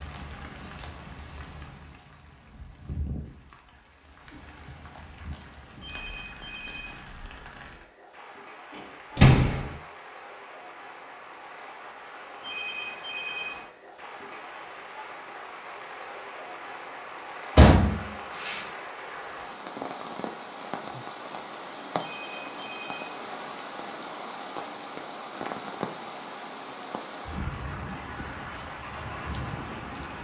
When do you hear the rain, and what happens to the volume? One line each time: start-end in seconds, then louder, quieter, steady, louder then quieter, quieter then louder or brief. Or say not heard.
0.0-30.1 louder.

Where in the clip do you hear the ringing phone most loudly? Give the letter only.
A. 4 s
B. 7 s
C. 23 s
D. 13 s
D.